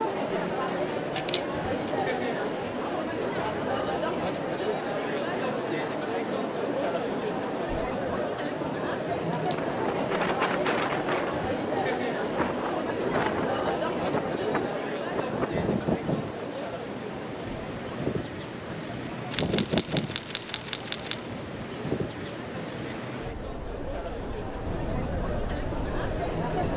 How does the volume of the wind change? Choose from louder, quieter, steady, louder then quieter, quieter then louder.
quieter.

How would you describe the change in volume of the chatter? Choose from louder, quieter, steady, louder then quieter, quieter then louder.
quieter.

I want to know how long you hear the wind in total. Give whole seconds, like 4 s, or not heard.
17 s.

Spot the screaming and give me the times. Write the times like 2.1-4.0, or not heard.
not heard.